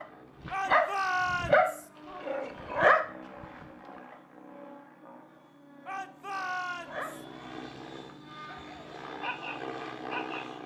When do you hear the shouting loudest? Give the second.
1 s.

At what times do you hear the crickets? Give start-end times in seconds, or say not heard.
not heard.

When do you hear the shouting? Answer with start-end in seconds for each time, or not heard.
0.5-1.9, 5.8-7.2.